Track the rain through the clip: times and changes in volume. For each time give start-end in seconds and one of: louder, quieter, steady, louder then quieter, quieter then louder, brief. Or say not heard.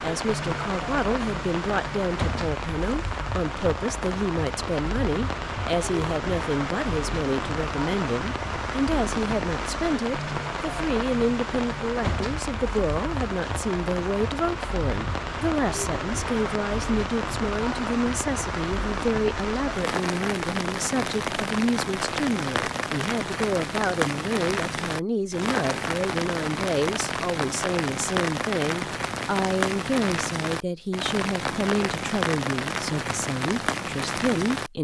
0.0-34.7 steady.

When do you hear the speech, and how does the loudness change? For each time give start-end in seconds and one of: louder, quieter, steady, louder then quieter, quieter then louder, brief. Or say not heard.
0.0-34.7 steady.